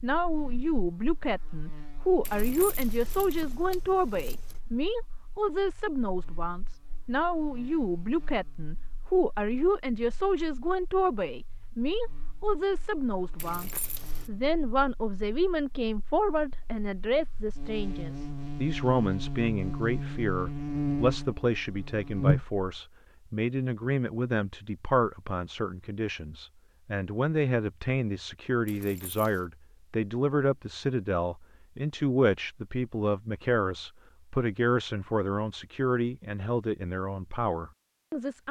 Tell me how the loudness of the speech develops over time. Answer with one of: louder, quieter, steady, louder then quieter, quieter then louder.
steady.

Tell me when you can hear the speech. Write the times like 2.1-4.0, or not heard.
0.0-38.4.